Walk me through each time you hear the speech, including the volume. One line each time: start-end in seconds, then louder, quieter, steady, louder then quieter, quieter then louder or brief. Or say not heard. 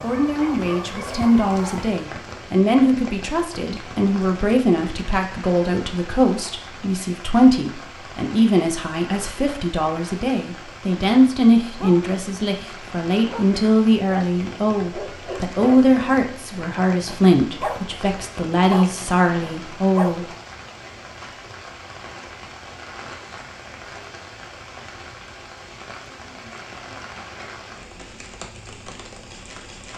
0.0-20.3 steady.